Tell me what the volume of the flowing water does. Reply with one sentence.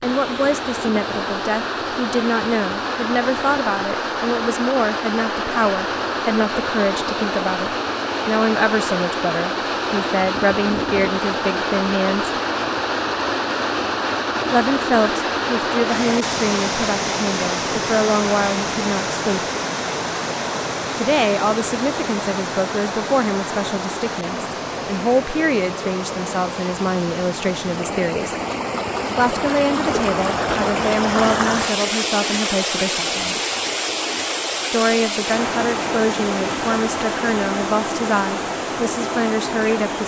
The volume of the flowing water stays about the same.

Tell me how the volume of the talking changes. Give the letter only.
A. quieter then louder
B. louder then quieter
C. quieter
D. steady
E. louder
D.